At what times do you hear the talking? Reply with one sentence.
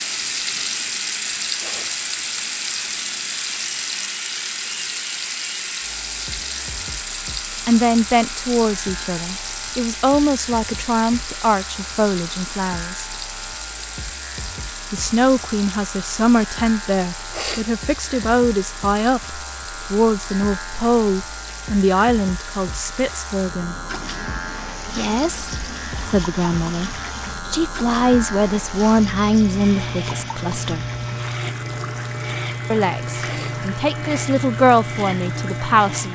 The talking can be heard from 7.7 to 13.1 s, from 14.9 to 23.8 s, from 24.9 to 30.9 s and from 32.7 to 36.1 s.